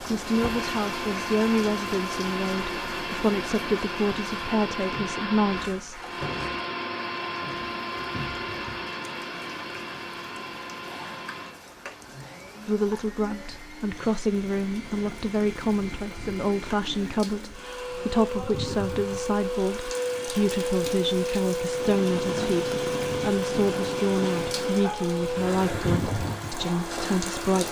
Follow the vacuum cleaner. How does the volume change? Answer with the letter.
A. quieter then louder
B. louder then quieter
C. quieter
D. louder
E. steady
A.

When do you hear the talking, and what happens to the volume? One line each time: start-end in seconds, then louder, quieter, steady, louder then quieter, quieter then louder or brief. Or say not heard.
0.0-6.0 steady
12.7-27.6 steady.